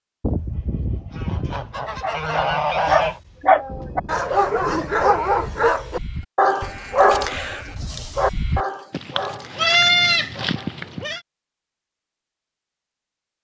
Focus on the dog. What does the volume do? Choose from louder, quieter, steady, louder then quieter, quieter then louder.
quieter.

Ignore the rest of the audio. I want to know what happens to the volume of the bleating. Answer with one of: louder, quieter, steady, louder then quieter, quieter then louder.
louder.